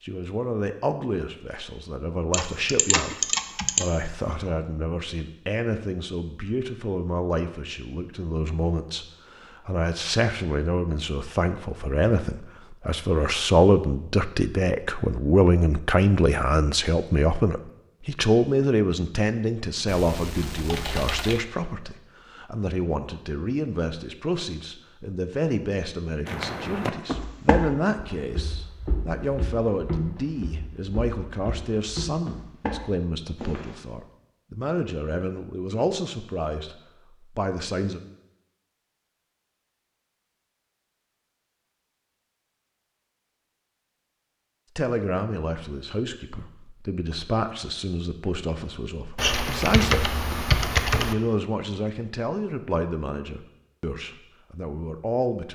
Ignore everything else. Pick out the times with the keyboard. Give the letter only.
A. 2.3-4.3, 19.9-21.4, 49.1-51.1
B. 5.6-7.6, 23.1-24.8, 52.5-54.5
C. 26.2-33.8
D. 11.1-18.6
A.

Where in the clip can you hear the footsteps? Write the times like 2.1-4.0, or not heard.
26.2-33.8.